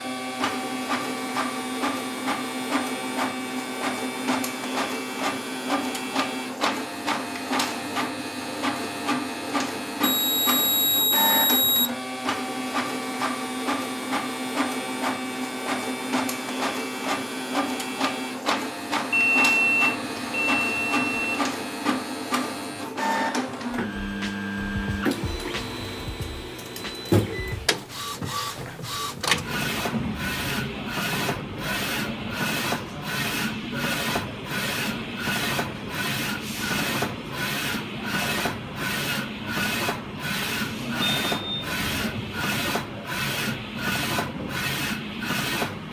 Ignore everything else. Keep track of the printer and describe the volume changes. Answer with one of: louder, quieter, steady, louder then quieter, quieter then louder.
steady.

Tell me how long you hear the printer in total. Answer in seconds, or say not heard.
46 s.